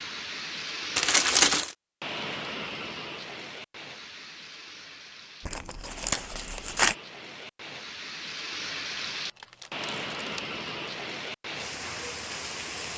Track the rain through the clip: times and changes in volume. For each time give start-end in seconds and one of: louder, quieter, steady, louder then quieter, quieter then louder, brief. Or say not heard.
0.0-12.9 quieter then louder.